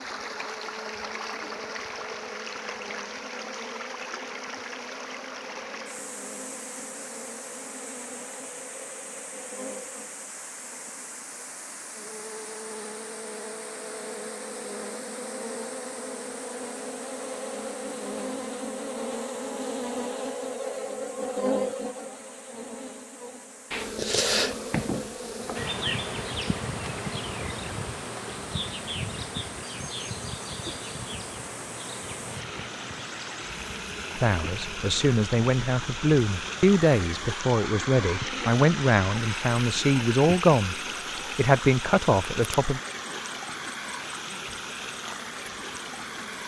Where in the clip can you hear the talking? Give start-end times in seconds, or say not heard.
34.1-42.8.